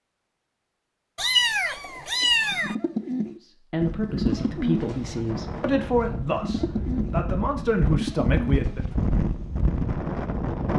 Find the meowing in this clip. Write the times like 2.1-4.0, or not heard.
1.1-2.8.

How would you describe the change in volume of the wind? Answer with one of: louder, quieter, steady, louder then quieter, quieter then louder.
louder.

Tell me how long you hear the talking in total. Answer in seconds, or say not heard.
5 s.